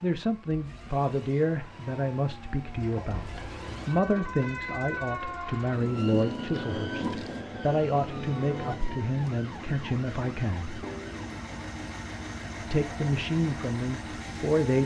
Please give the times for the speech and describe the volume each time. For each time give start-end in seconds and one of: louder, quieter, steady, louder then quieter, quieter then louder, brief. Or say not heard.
0.0-10.8 steady
12.7-14.8 brief.